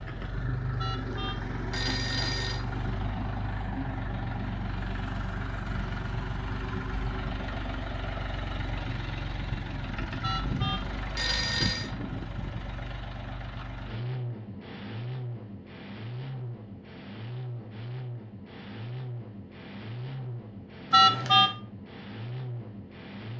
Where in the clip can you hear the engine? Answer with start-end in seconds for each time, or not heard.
0.0-23.3.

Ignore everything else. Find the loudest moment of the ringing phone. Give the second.
21 s.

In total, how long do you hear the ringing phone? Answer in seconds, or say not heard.
4 s.